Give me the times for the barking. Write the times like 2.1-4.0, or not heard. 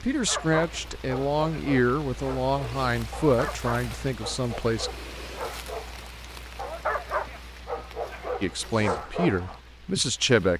0.2-9.6.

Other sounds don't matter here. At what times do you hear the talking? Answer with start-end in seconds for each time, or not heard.
0.0-4.9, 8.4-10.5.